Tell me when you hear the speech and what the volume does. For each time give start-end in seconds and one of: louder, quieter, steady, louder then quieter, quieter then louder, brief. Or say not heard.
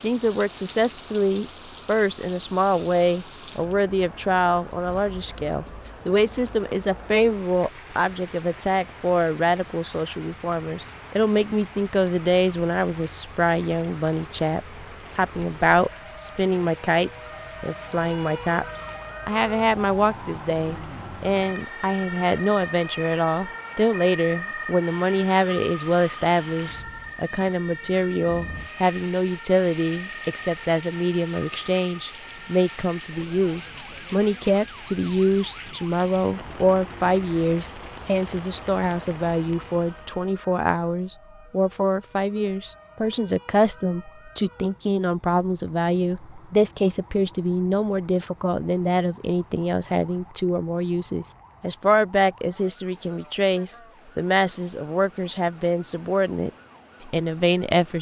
0.0-57.9 steady.